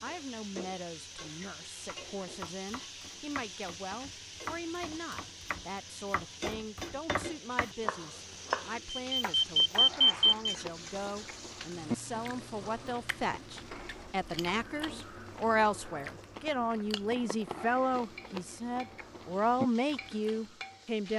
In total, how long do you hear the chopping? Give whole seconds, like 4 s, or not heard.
8 s.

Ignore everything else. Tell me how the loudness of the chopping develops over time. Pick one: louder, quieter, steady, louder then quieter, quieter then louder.
louder.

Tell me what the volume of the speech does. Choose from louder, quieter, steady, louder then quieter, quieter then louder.
louder.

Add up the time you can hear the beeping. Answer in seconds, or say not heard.
2 s.